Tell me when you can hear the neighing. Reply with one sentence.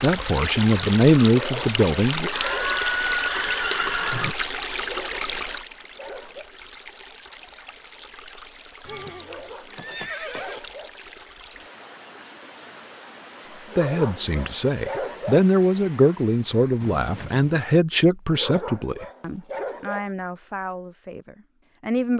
You can hear the neighing from 2.3 to 4.3 s, from 8.8 to 10.6 s and from 16.8 to 17.6 s.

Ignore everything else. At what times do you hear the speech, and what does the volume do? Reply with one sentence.
You can hear the speech briefly from 0.0 to 2.3 s; and from 13.8 to 22.1 s, getting quieter.